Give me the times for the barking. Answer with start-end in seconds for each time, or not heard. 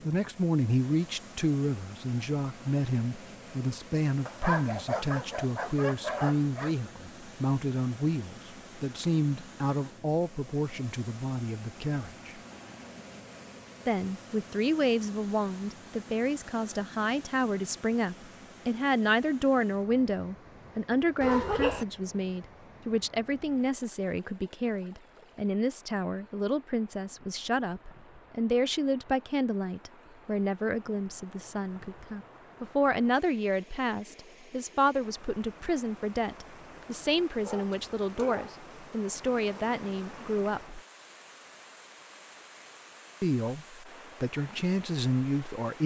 4.2-6.8, 21.2-21.9, 37.4-38.6.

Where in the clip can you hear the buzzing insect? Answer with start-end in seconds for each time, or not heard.
not heard.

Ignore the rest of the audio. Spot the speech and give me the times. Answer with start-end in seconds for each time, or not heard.
0.0-12.4, 13.8-40.8, 43.2-45.8.